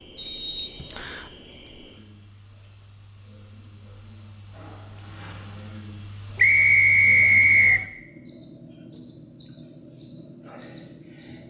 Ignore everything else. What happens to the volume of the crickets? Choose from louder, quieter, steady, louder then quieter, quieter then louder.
louder.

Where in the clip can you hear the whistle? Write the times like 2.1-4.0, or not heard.
0.1-1.3, 6.3-7.8.